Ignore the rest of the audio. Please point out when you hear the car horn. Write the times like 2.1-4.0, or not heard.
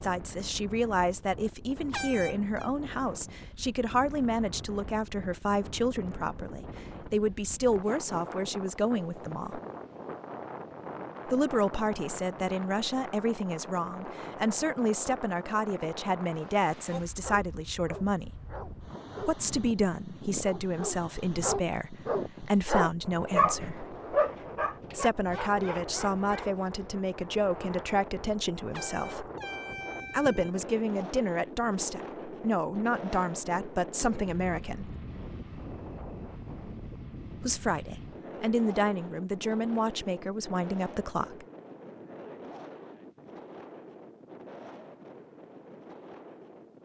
1.9-2.6, 28.7-30.5.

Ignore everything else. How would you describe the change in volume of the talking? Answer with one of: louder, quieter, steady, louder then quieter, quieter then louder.
steady.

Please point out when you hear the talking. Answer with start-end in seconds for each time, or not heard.
0.0-9.6, 11.2-18.4, 19.2-23.9, 24.9-29.2, 30.1-35.0, 37.4-41.5.